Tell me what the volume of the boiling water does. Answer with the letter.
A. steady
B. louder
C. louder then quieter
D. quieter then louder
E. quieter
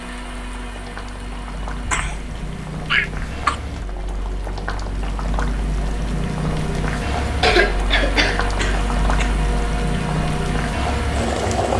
B.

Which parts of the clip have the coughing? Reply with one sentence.
You can hear the coughing from 1.9 to 3.5 s and from 7.4 to 9.3 s.